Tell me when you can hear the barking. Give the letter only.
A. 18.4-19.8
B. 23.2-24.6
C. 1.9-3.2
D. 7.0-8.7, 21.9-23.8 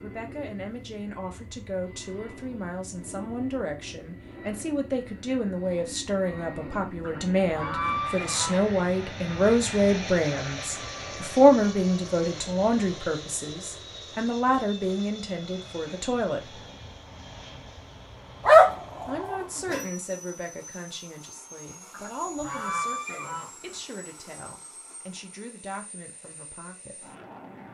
A.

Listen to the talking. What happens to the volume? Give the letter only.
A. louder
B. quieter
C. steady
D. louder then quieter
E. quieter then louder
D.